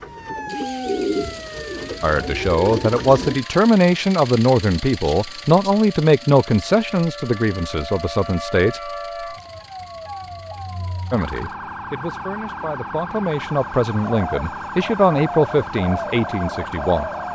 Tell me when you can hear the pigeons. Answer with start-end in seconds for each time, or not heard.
0.0-3.4, 14.2-17.3.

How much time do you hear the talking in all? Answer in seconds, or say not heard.
13 s.